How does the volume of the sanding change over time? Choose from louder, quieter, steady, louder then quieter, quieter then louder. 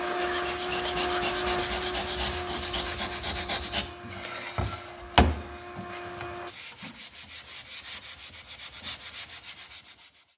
quieter.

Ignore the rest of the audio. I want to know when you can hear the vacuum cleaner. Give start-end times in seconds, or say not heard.
0.0-6.5.